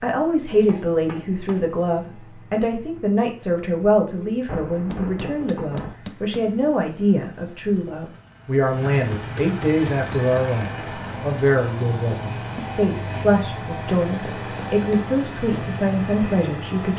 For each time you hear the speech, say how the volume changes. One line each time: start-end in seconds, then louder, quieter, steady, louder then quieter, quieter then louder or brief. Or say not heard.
0.0-16.9 steady.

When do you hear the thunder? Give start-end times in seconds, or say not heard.
4.5-6.0.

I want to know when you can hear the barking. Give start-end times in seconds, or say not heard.
not heard.